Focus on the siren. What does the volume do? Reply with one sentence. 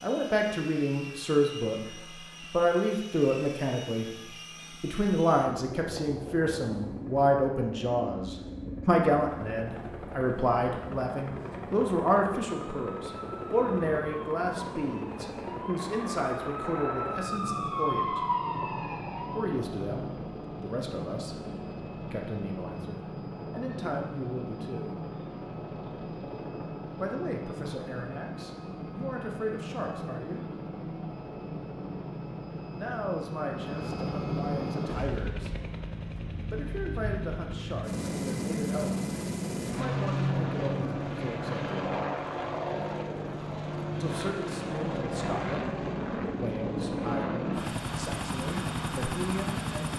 The volume of the siren goes up.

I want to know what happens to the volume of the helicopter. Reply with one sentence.
The volume of the helicopter goes up.